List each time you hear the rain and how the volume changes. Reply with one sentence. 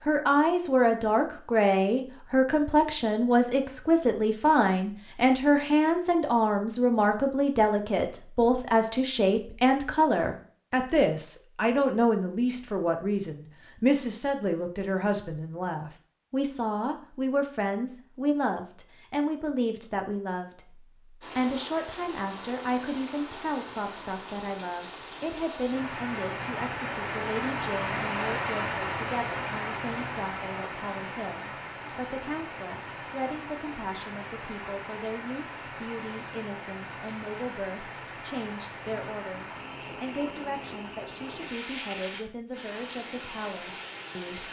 The rain can be heard from 21.2 to 44.4 s, getting louder then quieter.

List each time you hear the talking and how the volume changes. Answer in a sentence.
You can hear the talking from 0.1 to 44.4 s, getting quieter.